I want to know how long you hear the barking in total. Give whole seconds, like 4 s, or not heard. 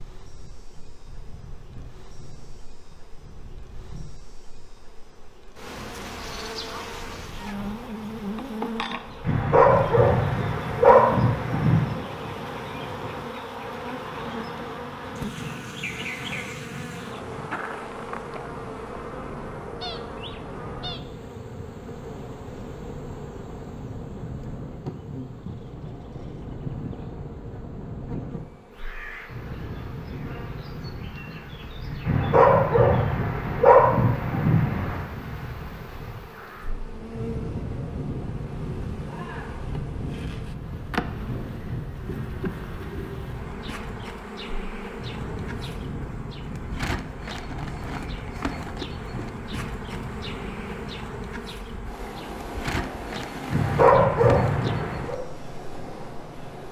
7 s.